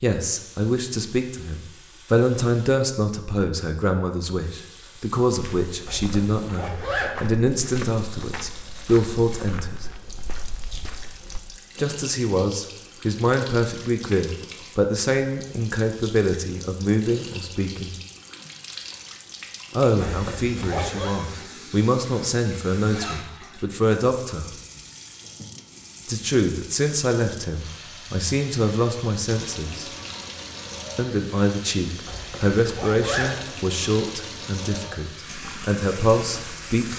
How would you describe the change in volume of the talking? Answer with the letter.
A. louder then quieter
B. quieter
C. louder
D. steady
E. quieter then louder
D.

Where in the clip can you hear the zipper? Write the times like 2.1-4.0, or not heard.
5.8-7.1, 20.0-21.1, 32.0-33.3.